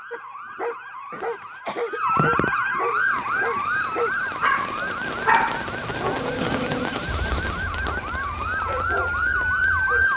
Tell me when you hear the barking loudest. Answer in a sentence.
The loudest moment of the barking is at 5 seconds.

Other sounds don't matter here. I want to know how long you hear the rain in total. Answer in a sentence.
You can hear the rain for 7 seconds altogether.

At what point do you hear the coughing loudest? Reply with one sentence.
The loudest moment of the coughing is at 7 seconds.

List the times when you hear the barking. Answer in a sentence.
You can hear the barking from 0.1 to 10.1 s.